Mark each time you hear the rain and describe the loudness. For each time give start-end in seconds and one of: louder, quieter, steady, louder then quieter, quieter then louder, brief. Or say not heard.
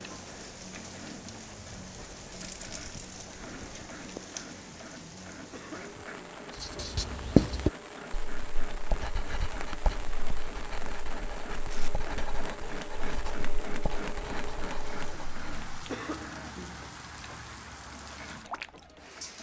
0.0-19.3 steady.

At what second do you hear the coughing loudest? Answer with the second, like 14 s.
16 s.